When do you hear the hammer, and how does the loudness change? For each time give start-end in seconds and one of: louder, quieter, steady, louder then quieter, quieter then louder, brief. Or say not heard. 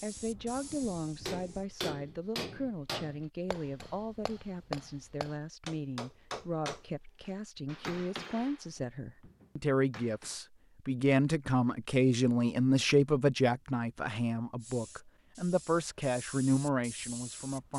1.2-10.3 quieter.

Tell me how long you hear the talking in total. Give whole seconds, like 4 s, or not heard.
18 s.